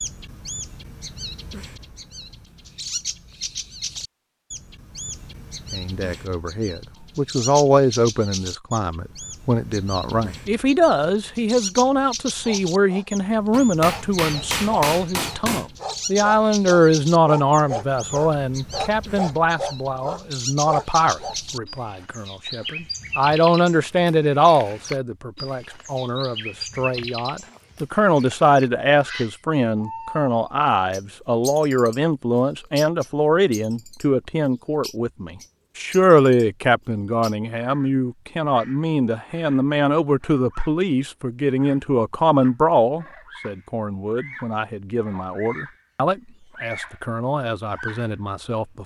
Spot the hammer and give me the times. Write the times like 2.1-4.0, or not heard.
13.5-15.7.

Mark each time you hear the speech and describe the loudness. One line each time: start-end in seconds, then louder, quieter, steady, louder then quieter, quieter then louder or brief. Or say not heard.
5.7-48.8 steady.